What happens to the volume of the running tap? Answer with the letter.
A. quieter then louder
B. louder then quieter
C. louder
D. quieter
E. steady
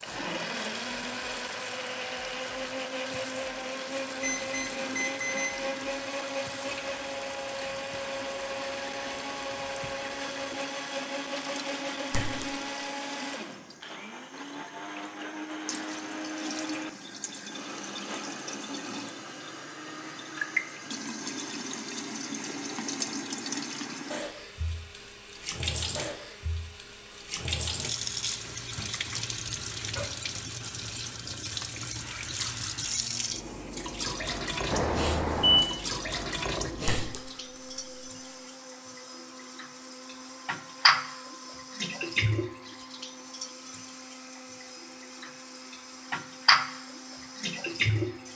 C.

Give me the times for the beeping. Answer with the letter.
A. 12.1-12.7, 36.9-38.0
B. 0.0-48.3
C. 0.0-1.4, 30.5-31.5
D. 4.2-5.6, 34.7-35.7
D.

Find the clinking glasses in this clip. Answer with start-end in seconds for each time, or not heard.
12.1-12.7, 36.9-38.0.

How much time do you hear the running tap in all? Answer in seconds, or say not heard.
48 s.